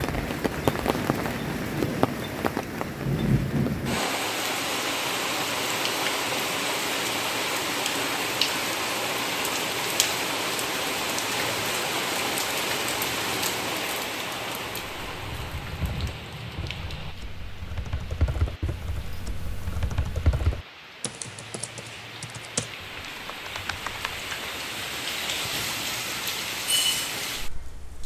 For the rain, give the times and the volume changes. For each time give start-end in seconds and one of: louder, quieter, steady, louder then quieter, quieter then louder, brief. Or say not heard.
0.0-28.0 quieter then louder.